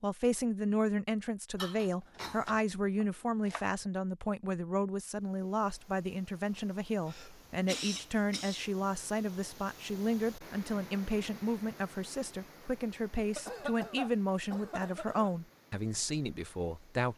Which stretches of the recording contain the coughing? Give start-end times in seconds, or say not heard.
1.6-2.6, 7.0-8.7, 13.3-15.3.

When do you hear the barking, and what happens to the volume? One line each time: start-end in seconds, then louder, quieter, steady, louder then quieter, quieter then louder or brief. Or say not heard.
not heard.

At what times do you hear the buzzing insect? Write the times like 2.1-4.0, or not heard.
not heard.